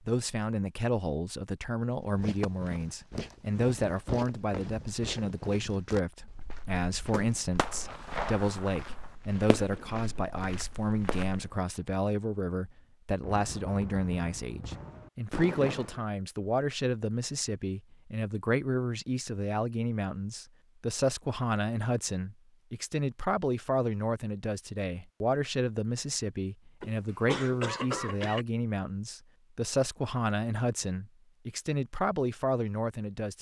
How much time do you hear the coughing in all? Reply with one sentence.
You can hear the coughing for 2 seconds altogether.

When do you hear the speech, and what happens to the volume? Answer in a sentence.
You can hear the speech from 0.1 to 33.3 s, at a steady volume.